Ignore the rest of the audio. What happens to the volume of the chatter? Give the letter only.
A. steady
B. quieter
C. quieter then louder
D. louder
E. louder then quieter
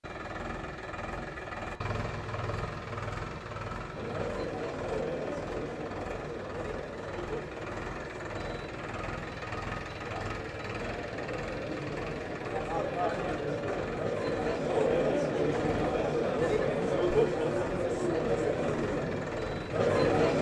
C.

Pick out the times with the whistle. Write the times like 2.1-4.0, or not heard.
not heard.